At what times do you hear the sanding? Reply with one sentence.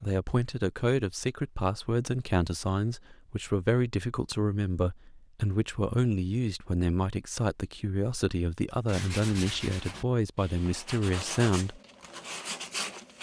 The sanding can be heard from 8.8 to 13.1 s.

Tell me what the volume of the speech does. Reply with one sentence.
The loudness of the speech stays about the same.